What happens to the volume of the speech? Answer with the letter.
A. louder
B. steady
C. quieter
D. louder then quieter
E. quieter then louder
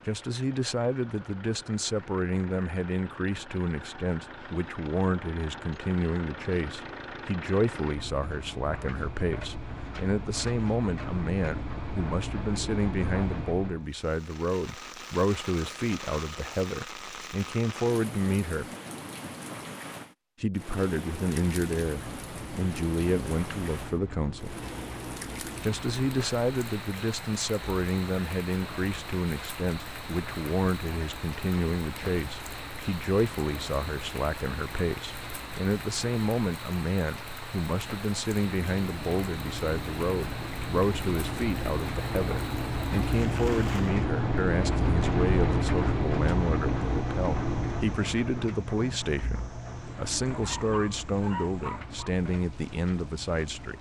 B.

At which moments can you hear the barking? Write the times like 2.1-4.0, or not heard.
50.4-52.1.